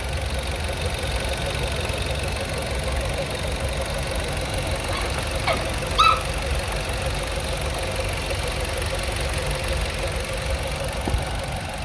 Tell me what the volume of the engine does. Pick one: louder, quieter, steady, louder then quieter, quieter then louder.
steady.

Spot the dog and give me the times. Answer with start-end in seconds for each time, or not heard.
4.9-6.2.